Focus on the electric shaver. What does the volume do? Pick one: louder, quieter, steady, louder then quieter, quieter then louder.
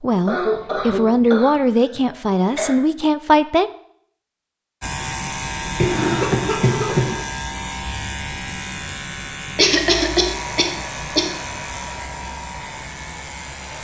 quieter.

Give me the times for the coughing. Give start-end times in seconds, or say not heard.
0.2-2.8, 5.8-7.2, 9.6-11.3.